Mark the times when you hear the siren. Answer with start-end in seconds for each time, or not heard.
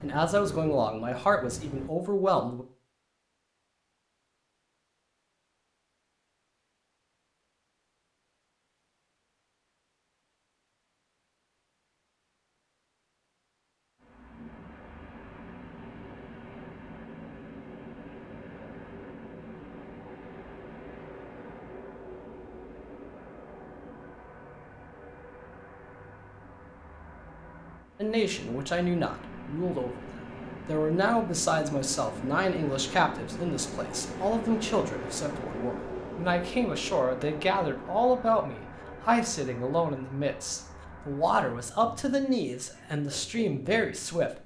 not heard.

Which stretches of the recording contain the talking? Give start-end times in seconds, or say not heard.
0.0-2.6, 28.0-44.4.